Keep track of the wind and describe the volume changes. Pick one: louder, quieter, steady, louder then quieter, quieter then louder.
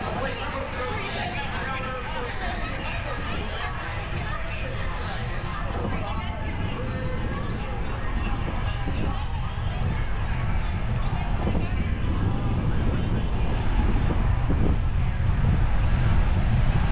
louder.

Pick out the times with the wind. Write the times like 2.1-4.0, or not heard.
0.0-16.8.